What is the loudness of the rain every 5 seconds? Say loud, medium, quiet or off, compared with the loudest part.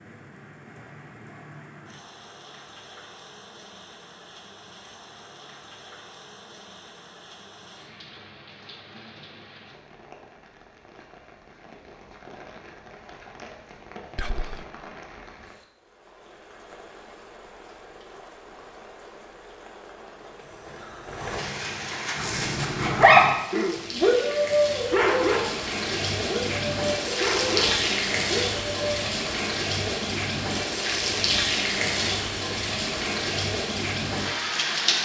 quiet, quiet, quiet, quiet, medium, loud, loud.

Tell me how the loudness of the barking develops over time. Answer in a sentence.
The loudness of the barking goes down.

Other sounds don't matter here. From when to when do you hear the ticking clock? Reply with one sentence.
You can't hear the ticking clock here.